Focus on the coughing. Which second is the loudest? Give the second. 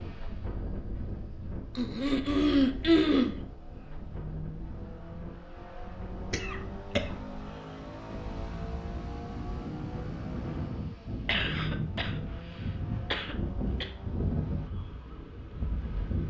3 s.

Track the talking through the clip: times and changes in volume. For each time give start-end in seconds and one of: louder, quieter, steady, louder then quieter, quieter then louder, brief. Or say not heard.
not heard.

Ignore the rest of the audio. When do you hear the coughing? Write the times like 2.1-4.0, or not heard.
1.8-3.4, 6.3-7.1, 11.2-12.2, 13.1-13.9.